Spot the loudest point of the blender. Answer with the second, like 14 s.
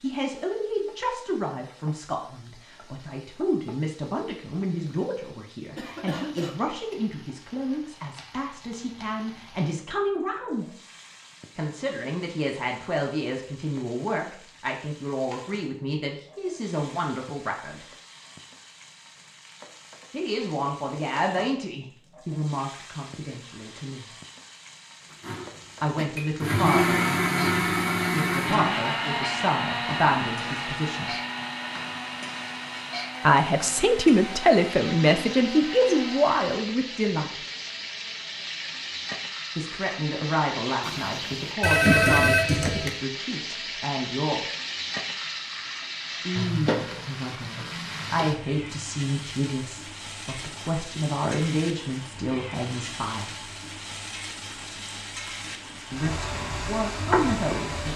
27 s.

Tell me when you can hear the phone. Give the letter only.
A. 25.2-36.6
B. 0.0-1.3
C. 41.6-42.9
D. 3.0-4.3
C.